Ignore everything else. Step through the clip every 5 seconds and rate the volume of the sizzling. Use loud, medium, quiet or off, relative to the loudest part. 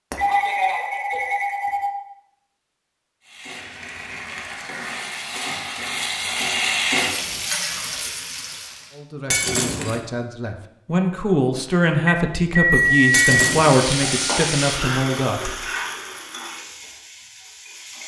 medium, loud, loud, medium.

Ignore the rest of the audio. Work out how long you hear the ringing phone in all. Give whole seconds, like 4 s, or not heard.
3 s.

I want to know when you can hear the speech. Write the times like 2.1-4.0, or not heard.
8.9-15.6.